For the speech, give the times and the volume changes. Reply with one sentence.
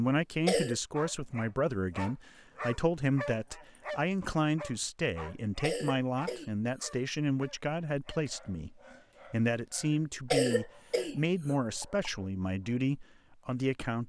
The speech can be heard from 0.0 to 14.0 s, at a steady volume.